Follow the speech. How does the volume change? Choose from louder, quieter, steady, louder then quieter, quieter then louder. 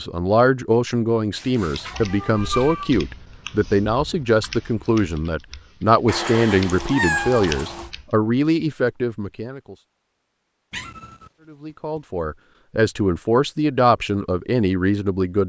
steady.